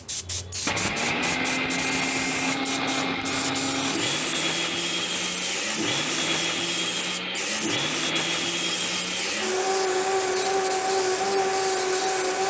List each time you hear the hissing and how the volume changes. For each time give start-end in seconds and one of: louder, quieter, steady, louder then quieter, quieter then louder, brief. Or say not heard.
0.0-12.4 steady.